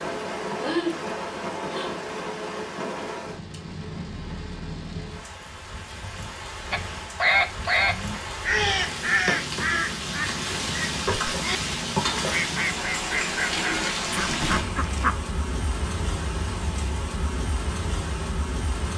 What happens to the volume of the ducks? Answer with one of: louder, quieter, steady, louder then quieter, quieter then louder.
quieter.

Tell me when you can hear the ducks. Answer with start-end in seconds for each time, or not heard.
6.7-15.2.